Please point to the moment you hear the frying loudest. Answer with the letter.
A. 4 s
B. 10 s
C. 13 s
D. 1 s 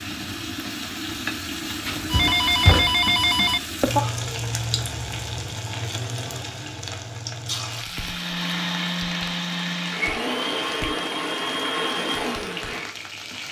A.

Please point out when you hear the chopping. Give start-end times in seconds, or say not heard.
not heard.